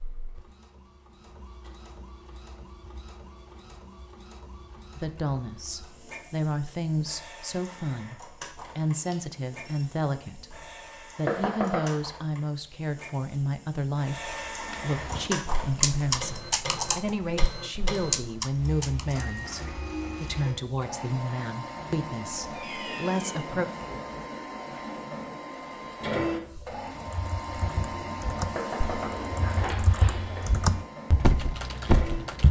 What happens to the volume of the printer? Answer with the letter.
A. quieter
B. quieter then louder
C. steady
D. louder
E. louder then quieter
D.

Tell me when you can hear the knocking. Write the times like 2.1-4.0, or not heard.
11.2-12.0, 28.6-30.5.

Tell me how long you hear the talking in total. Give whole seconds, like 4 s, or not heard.
18 s.